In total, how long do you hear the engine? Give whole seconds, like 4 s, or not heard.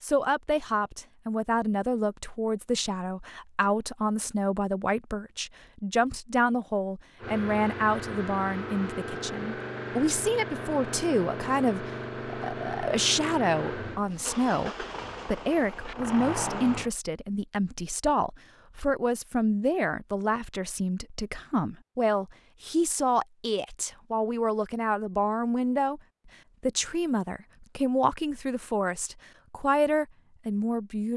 10 s.